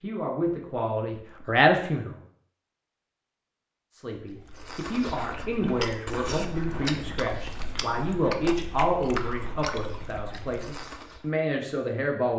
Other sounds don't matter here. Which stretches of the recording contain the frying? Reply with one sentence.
The frying can't be heard in this clip.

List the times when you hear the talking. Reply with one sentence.
The talking can be heard from 0.0 to 2.1 s and from 3.9 to 12.3 s.